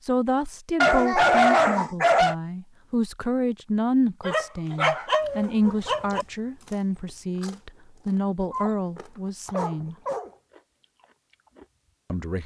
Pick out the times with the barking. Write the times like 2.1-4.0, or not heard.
0.8-2.4, 4.2-6.2, 8.5-10.3.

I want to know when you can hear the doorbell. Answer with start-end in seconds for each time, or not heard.
not heard.